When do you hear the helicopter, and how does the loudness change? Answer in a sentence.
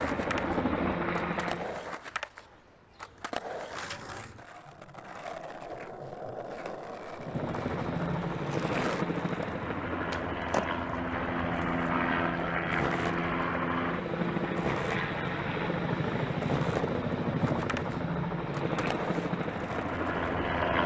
You can hear the helicopter briefly from 0.0 to 1.9 s; and from 7.2 to 20.8 s, at a steady volume.